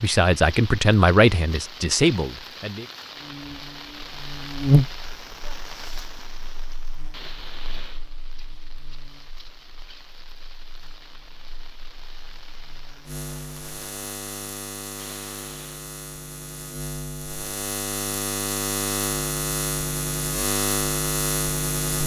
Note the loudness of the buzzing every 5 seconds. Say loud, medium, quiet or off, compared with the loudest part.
loud, quiet, quiet, medium, loud.